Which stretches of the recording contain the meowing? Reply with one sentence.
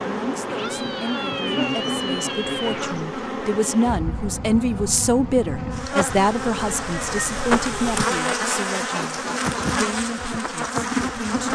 You can hear the meowing from 0.5 to 3.0 s and from 6.0 to 8.1 s.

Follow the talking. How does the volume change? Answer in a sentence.
The loudness of the talking goes up, then down.